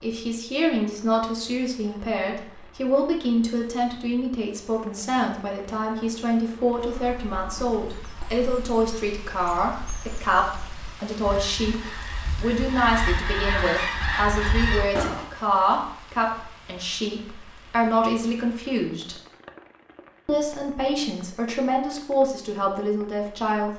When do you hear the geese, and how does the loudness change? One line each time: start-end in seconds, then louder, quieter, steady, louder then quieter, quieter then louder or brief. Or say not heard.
6.8-15.2 louder.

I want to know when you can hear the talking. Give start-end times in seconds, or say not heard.
0.0-19.1, 20.2-23.7.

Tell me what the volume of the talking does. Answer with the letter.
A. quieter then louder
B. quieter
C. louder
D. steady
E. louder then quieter
D.